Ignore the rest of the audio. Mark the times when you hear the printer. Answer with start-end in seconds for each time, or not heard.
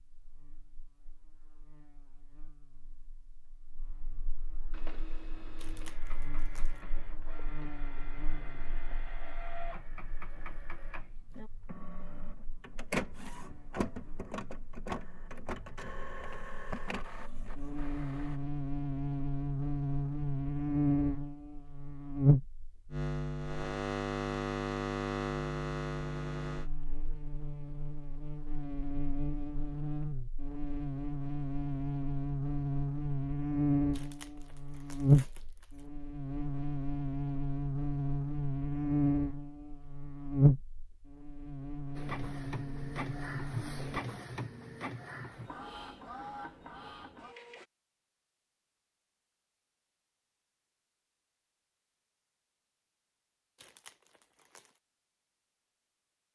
4.7-18.4, 42.0-47.6.